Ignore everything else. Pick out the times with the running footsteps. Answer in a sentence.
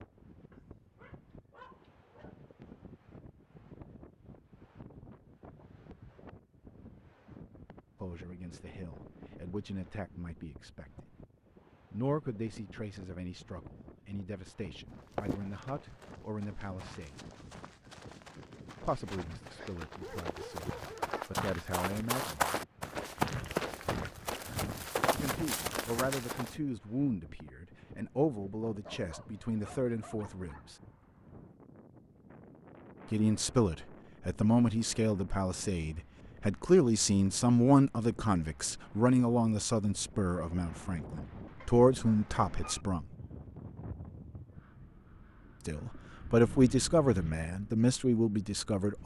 You can hear the running footsteps from 14.9 to 26.6 s.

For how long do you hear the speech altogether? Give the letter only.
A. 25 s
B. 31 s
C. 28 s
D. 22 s
B.